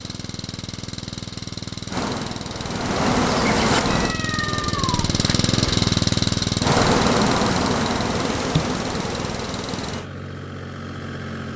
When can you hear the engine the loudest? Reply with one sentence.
The loudest moment of the engine is at 6 seconds.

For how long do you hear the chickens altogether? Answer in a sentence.
The chickens can't be heard in this clip.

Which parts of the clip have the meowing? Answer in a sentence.
The meowing can be heard from 3.9 to 5.4 s.